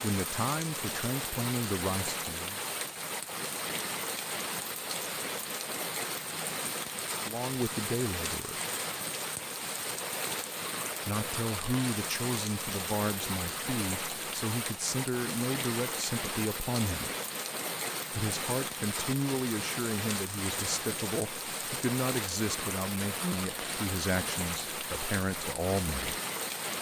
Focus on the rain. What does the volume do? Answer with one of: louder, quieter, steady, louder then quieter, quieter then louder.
steady.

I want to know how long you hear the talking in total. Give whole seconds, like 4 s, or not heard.
18 s.